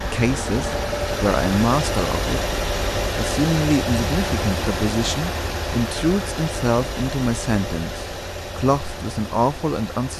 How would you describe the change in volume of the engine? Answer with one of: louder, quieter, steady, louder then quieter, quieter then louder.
quieter.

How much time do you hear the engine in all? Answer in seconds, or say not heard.
10 s.